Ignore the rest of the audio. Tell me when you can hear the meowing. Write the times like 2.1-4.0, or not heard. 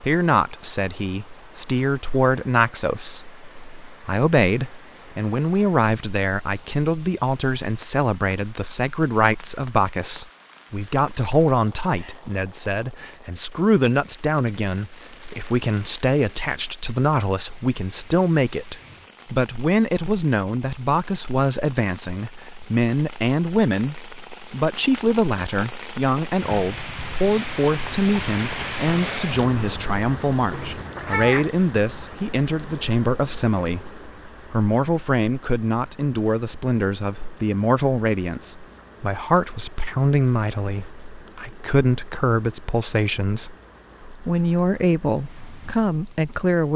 30.5-31.5.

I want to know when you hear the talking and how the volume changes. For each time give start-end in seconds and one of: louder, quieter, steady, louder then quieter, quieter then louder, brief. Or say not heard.
0.0-46.7 steady.